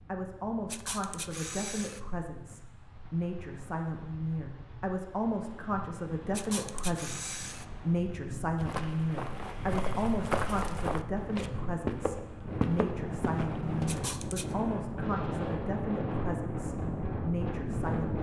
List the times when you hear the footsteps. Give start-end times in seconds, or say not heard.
8.6-13.9.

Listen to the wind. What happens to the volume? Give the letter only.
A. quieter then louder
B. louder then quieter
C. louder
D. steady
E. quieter
C.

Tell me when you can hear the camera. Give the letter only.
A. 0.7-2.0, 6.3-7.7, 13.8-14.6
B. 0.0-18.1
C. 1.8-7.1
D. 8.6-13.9
A.